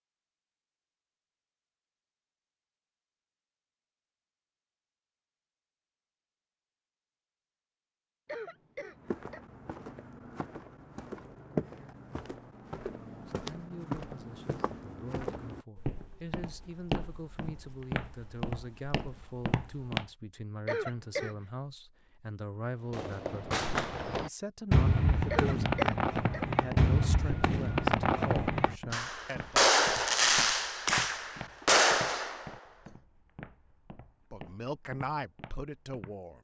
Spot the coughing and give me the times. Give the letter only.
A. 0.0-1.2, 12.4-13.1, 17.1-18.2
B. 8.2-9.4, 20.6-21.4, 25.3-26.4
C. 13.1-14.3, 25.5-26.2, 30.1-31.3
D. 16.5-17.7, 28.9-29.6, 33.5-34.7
B.